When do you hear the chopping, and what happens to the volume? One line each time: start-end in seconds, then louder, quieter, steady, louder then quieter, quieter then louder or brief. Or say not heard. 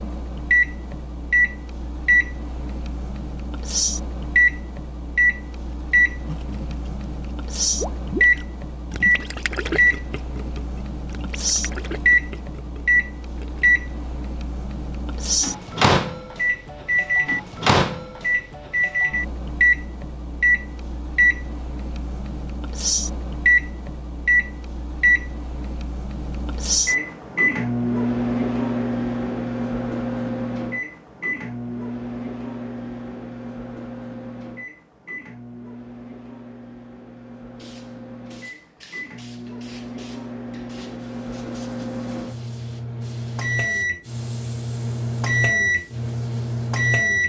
not heard.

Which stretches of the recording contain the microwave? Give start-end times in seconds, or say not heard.
0.0-47.2.